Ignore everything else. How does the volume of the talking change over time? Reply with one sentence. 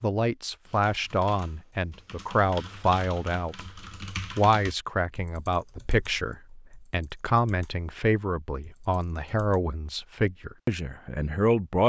The loudness of the talking stays about the same.